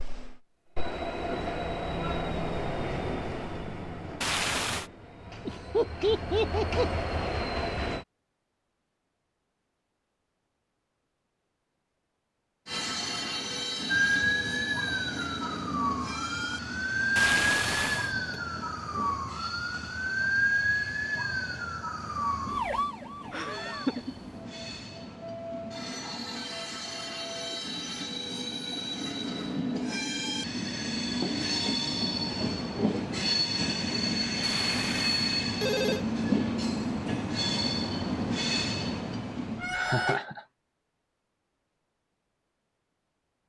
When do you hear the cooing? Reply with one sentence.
You can't hear the cooing here.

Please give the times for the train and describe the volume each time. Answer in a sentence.
You can hear the train from 0.0 to 8.1 s, getting quieter then louder; and from 12.7 to 40.2 s, getting quieter then louder.